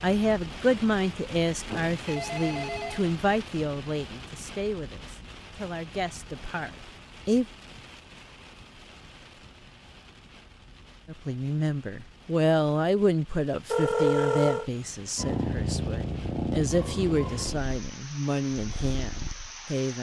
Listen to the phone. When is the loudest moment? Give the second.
14 s.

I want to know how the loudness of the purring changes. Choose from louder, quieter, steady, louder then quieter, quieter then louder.
quieter.